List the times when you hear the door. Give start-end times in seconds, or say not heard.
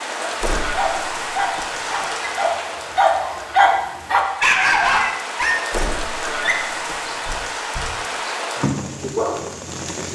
0.4-2.1, 5.7-7.5.